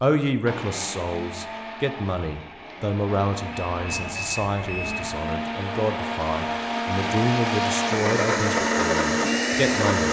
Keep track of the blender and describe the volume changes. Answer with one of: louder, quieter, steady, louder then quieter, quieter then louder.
louder.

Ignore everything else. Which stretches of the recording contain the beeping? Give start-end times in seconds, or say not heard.
3.7-5.2.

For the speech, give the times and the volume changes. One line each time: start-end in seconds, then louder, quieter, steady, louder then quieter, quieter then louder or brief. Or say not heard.
0.0-10.0 steady.